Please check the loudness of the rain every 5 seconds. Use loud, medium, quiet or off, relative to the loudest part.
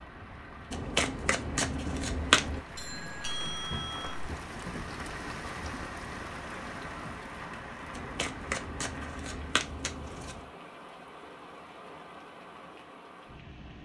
loud, loud, medium.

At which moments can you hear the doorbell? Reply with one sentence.
The doorbell can be heard from 2.8 to 4.2 s.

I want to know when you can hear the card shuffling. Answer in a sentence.
You can hear the card shuffling from 0.7 to 2.6 s and from 7.9 to 10.5 s.